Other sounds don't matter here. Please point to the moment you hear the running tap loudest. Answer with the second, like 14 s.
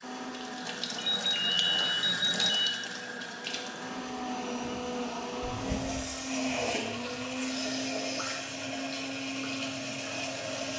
2 s.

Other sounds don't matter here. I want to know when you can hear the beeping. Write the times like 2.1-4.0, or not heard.
0.9-2.8, 5.4-6.0.